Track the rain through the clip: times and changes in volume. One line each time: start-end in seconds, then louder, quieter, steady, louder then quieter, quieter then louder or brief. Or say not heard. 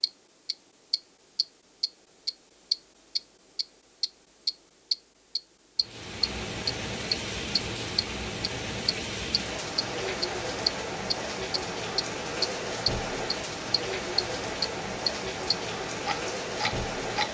5.8-17.2 steady.